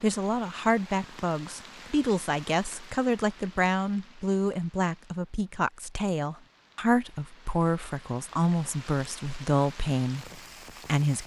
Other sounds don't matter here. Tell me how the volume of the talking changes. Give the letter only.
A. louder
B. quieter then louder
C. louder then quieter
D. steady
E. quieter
D.